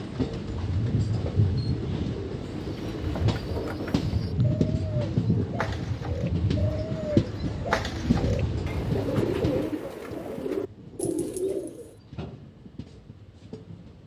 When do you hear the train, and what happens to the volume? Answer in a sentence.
The train can be heard from 0.0 to 14.0 s, getting quieter.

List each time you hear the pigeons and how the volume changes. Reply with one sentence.
You can hear the pigeons from 2.5 to 11.9 s, getting louder.